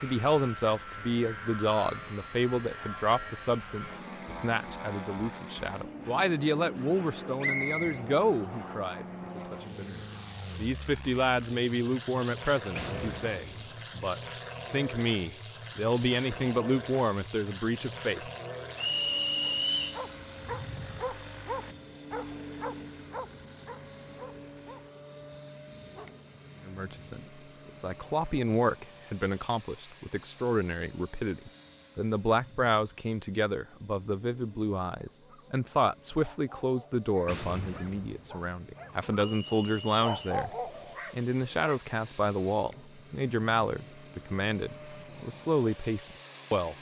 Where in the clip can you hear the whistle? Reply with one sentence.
You can hear the whistle from 7.4 to 8.0 s, from 18.8 to 20.0 s and from 39.4 to 40.1 s.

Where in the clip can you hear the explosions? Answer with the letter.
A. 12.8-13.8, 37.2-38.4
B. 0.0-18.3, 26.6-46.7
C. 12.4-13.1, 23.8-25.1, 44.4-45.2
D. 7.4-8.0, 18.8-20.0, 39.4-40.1
A.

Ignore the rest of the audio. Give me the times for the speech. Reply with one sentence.
You can hear the speech from 0.0 to 18.3 s and from 26.6 to 46.7 s.